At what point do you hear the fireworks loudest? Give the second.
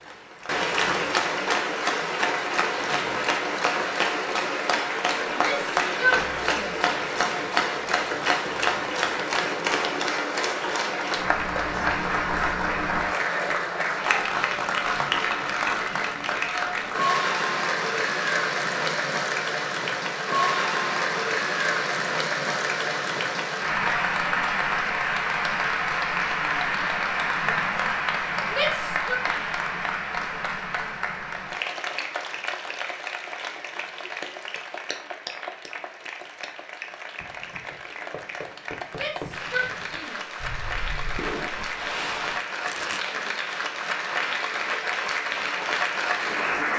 42 s.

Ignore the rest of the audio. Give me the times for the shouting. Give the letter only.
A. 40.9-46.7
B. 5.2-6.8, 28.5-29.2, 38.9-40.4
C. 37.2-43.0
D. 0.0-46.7
B.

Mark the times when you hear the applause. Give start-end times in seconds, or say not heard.
0.0-46.7.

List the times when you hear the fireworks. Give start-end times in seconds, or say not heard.
37.2-43.0.